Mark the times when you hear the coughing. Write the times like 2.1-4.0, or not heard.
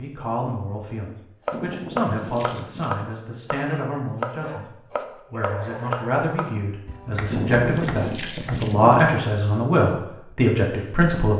not heard.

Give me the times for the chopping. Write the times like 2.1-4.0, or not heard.
1.4-8.7.